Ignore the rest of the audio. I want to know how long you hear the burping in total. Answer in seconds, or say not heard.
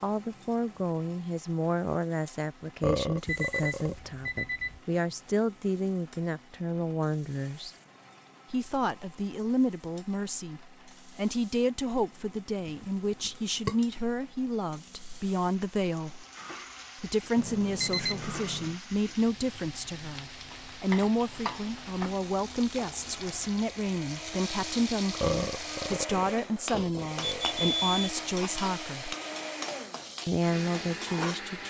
5 s.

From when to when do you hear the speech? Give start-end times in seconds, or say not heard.
0.0-7.7, 8.5-16.2, 17.0-29.1, 30.2-31.6.